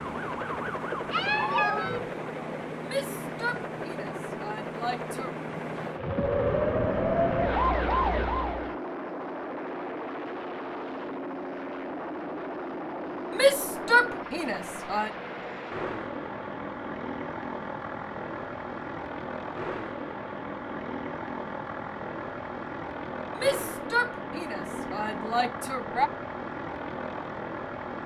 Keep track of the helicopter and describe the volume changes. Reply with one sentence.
The loudness of the helicopter stays about the same.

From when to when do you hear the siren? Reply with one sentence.
You can hear the siren from 0.0 to 2.1 s and from 5.9 to 8.8 s.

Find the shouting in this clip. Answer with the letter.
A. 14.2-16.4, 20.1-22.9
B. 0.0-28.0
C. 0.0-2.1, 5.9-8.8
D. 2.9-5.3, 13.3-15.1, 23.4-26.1
D.